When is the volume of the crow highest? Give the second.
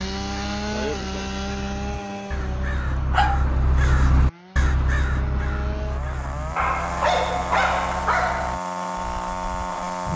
4 s.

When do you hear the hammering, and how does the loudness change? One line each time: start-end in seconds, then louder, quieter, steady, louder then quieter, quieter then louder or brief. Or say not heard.
not heard.